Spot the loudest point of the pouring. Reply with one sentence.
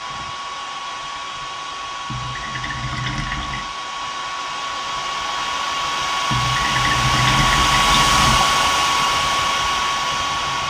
The loudest moment of the pouring is at 7 seconds.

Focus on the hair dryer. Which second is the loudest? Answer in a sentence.
The loudest moment of the hair dryer is at 8 seconds.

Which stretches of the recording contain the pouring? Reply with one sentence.
You can hear the pouring from 2.1 to 3.8 s and from 6.3 to 8.4 s.